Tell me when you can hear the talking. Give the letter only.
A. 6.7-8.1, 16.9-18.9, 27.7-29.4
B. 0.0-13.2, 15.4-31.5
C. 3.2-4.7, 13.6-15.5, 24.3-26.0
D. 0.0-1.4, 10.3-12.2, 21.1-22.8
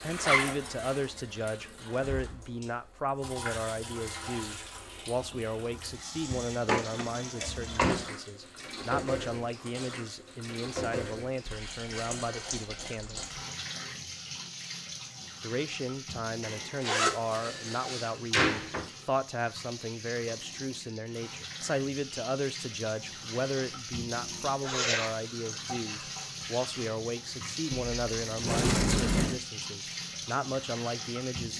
B.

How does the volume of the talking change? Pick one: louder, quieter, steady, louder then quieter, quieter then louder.
steady.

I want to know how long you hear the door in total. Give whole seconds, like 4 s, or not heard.
5 s.